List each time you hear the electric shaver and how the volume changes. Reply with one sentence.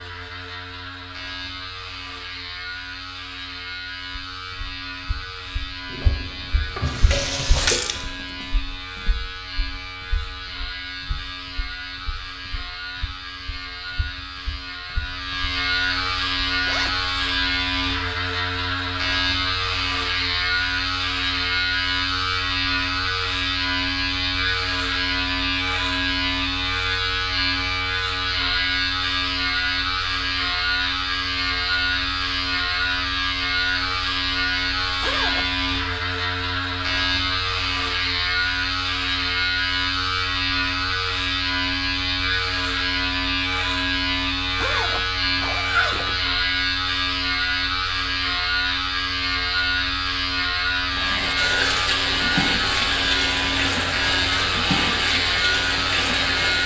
You can hear the electric shaver from 0.0 to 56.6 s, getting louder.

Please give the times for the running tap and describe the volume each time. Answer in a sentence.
You can hear the running tap briefly from 5.8 to 8.1 s; and from 50.9 to 56.6 s, at a steady volume.